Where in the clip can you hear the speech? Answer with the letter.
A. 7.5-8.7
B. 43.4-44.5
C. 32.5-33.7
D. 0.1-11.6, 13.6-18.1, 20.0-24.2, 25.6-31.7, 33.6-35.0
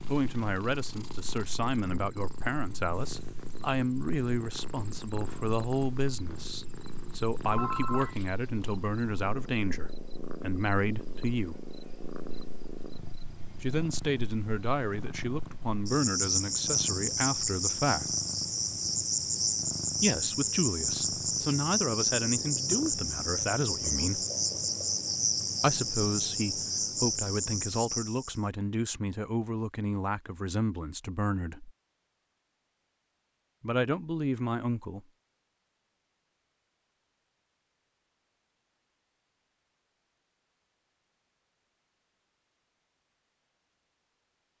D.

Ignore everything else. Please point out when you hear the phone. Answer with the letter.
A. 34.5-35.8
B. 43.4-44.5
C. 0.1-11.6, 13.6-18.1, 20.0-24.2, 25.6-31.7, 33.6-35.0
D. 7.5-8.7
D.